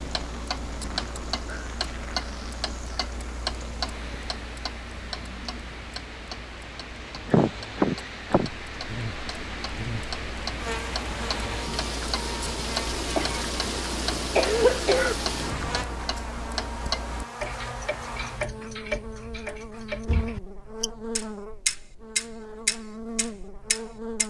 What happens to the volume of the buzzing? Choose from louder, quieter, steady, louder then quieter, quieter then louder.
steady.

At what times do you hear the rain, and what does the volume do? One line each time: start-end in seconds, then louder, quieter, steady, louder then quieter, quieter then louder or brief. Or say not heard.
0.0-15.8 louder.